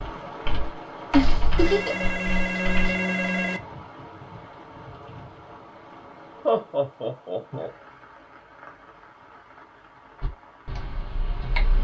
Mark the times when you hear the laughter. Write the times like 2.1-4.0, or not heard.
1.1-2.1, 6.5-7.7.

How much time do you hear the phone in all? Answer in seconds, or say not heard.
2 s.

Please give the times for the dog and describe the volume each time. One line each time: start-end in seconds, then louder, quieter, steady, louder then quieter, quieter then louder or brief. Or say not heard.
not heard.